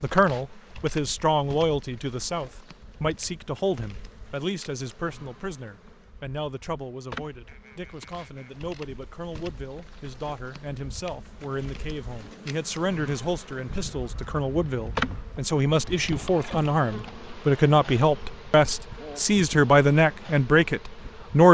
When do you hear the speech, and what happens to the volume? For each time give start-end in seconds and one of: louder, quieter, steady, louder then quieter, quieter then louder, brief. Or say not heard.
0.0-21.4 quieter then louder.